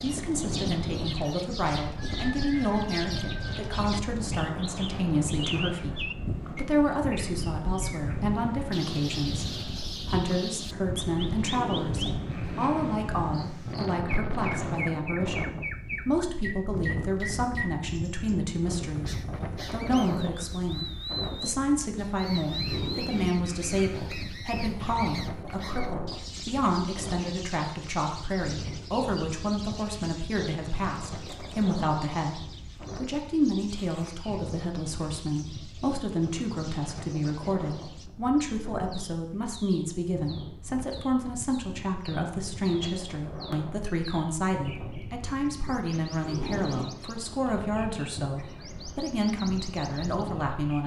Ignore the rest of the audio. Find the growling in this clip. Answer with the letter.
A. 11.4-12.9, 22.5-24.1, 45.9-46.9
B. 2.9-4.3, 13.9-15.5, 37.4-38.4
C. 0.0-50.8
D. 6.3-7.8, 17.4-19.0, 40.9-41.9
A.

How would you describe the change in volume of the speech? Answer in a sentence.
The loudness of the speech stays about the same.